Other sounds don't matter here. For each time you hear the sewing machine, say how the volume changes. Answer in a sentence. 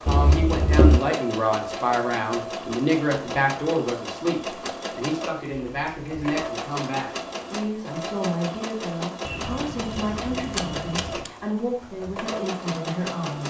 The sewing machine can be heard from 0.0 to 13.4 s, at a steady volume.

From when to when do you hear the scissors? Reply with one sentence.
You can hear the scissors from 0.1 to 1.0 s, from 5.7 to 6.3 s and from 9.2 to 11.3 s.